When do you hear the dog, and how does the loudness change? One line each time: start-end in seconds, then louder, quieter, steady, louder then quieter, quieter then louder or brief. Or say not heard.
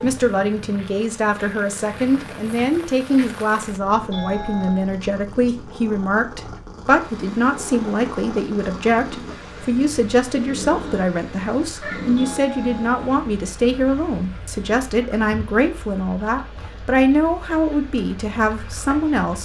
not heard.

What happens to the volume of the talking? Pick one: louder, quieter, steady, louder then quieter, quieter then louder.
steady.